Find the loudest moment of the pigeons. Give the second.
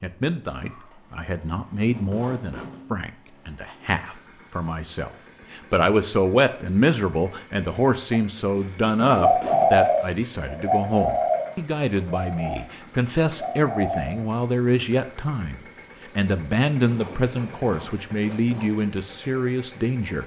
10 s.